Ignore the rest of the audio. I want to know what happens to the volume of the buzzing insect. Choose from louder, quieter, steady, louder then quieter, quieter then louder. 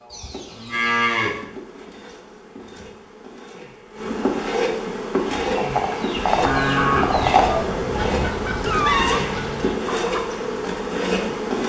louder.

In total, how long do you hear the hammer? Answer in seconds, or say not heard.
not heard.